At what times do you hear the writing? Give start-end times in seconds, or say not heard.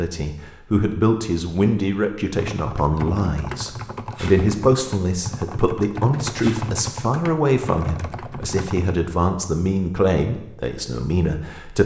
not heard.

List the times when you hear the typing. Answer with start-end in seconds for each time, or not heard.
2.4-9.0.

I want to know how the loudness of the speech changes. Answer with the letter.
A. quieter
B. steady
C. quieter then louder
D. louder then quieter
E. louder
B.